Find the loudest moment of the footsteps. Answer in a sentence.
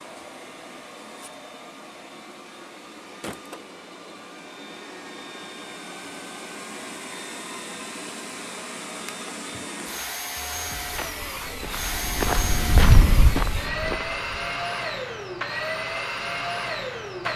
The volume of the footsteps peaks at 13 seconds.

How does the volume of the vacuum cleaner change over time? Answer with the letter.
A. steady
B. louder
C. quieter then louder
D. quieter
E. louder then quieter
B.